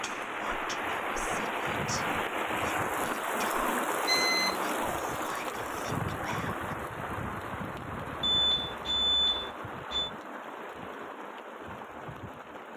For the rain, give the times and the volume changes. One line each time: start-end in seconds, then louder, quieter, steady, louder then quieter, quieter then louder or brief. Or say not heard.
0.0-12.7 quieter.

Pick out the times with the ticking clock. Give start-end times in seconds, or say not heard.
not heard.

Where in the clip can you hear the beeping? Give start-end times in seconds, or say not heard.
4.0-4.8, 8.2-10.1.